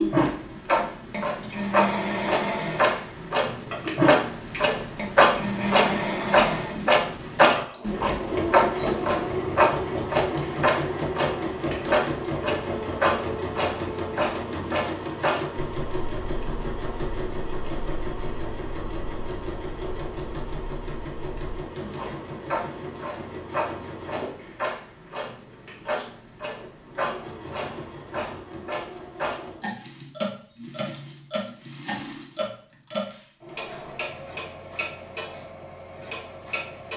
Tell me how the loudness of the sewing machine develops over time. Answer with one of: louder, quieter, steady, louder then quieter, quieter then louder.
quieter.